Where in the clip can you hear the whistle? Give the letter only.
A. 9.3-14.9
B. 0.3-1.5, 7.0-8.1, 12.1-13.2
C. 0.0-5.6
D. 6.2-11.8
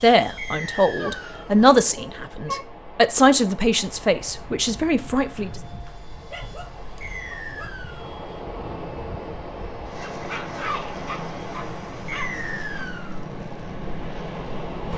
B.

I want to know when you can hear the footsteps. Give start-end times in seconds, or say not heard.
not heard.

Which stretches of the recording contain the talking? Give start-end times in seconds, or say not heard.
0.0-5.6.